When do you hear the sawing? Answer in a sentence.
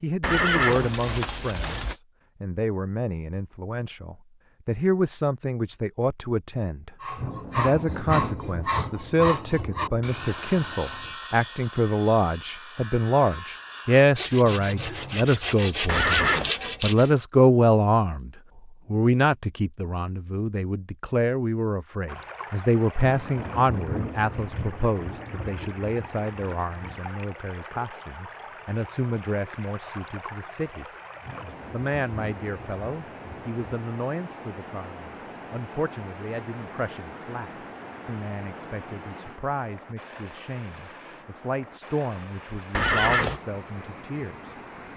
The sawing can be heard from 7.0 to 17.1 s.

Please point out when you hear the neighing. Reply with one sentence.
You can hear the neighing from 0.2 to 1.9 s, from 15.8 to 16.5 s and from 42.7 to 43.4 s.